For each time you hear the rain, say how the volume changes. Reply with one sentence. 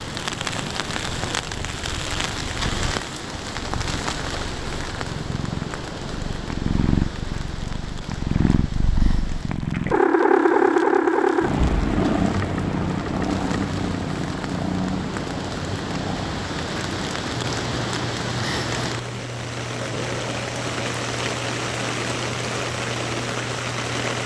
You can hear the rain from 0.0 to 24.2 s, getting quieter then louder.